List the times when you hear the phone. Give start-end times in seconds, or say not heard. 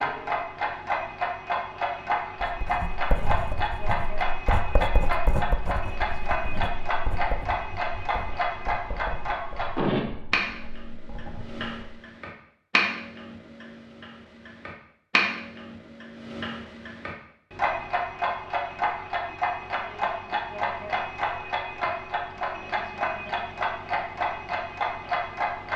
not heard.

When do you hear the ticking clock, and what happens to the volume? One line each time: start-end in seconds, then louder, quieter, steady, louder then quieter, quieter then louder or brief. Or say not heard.
0.0-25.7 steady.